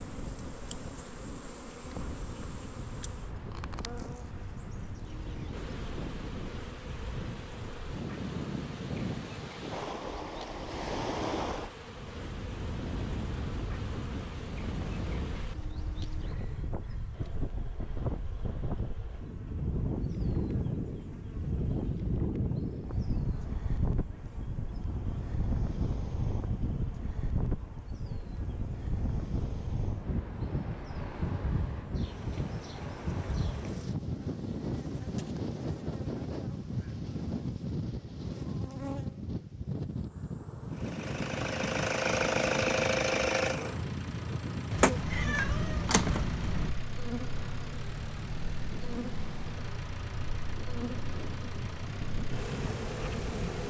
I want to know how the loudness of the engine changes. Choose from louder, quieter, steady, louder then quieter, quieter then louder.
quieter.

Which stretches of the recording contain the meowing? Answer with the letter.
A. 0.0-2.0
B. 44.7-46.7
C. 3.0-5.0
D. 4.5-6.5
B.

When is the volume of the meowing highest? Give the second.
46 s.